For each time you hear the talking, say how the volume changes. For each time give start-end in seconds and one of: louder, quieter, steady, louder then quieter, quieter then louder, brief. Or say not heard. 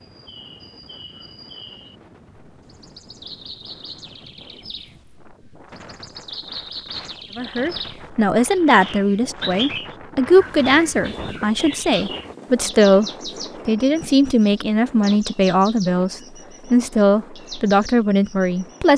7.3-18.9 steady.